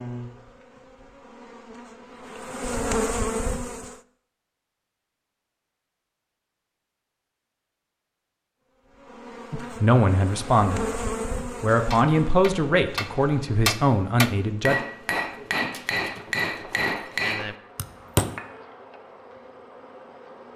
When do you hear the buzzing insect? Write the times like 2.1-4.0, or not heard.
0.0-4.0, 8.8-20.5.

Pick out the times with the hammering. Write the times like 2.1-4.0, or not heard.
11.9-18.4.